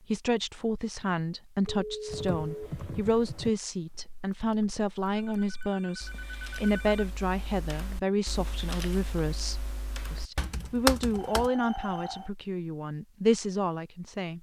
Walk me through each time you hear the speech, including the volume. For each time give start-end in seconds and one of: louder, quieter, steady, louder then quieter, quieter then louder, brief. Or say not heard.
0.1-14.3 steady.